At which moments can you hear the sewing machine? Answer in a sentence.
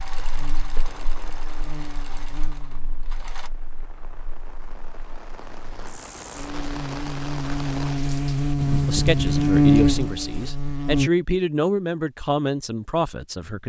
The sewing machine can be heard from 0.0 to 3.5 s.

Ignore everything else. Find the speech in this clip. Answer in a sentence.
You can hear the speech from 8.8 to 13.6 s.